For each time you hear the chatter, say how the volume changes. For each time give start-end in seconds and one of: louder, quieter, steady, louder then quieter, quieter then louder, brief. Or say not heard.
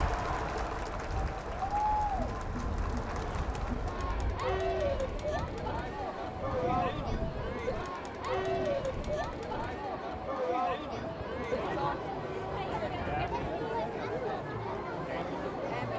0.0-15.9 steady.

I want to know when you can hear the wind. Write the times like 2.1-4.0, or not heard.
0.0-13.6.